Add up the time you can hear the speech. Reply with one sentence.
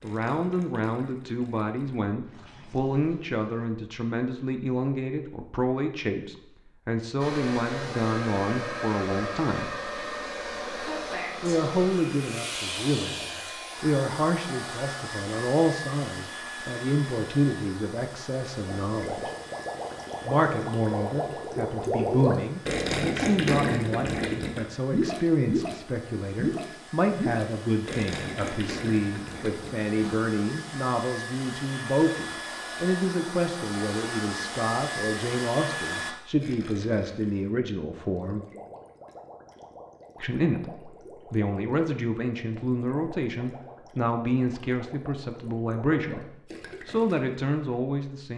The speech can be heard for 43 seconds in total.